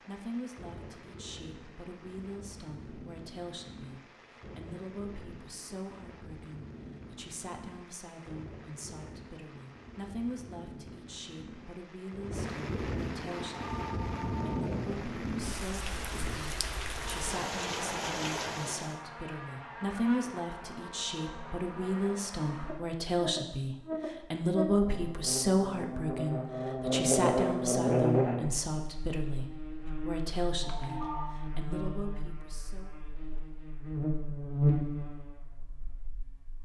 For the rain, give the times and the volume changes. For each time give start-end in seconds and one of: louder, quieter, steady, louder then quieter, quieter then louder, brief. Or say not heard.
0.0-19.0 louder.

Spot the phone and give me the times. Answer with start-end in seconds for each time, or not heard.
13.4-14.6, 30.6-31.4.